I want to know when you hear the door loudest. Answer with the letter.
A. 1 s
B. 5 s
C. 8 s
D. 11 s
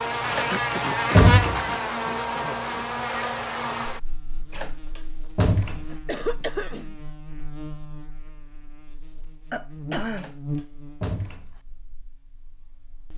A.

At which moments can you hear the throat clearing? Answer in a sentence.
You can hear the throat clearing from 0.5 to 2.9 s, from 5.9 to 7.0 s and from 9.5 to 10.3 s.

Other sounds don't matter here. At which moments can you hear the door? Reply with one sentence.
The door can be heard from 0.3 to 1.7 s, from 4.5 to 5.9 s and from 10.2 to 11.6 s.